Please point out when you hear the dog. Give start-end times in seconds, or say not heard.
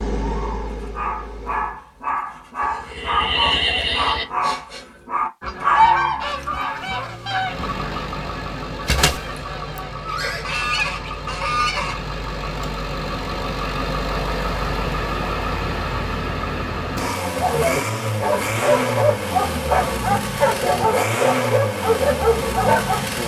0.2-6.8, 17.2-23.0.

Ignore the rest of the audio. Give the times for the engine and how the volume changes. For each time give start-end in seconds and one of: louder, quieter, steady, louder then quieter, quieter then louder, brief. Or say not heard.
0.0-1.8 brief
7.3-23.2 louder.